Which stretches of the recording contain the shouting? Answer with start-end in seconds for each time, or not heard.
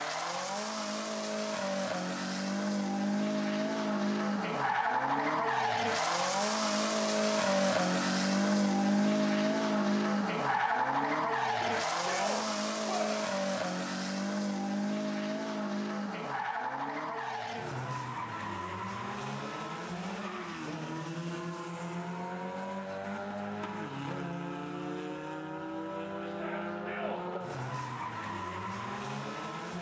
11.4-13.2, 26.2-27.2.